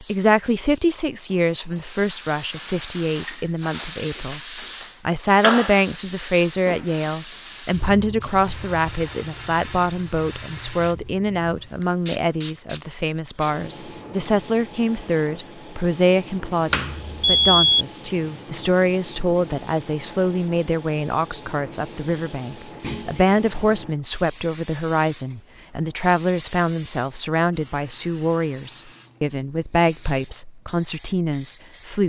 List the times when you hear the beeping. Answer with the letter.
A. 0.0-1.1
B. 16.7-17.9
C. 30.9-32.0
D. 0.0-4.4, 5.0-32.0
B.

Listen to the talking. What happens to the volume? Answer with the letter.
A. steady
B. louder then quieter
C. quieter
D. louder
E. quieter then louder
A.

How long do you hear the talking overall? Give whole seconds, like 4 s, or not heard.
31 s.